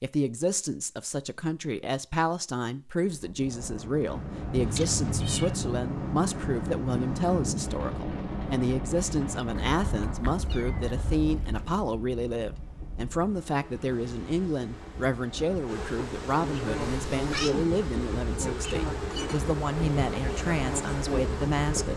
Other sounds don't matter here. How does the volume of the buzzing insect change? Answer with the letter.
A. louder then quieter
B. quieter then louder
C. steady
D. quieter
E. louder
E.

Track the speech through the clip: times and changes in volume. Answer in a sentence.
The speech can be heard from 0.0 to 21.9 s, at a steady volume.